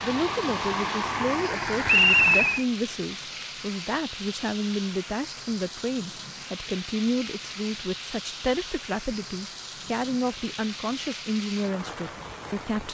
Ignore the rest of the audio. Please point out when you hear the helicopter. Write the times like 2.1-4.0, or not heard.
0.0-2.6.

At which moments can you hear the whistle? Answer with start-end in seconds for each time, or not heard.
1.9-2.6.